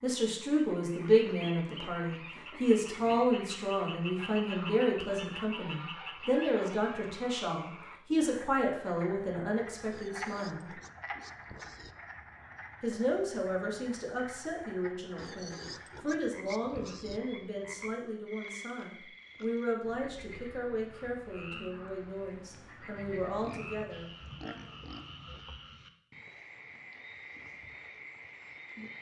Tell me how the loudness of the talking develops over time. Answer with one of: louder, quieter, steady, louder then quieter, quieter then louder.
quieter.